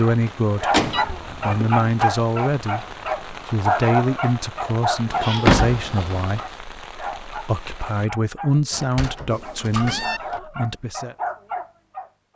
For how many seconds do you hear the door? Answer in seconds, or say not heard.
4 s.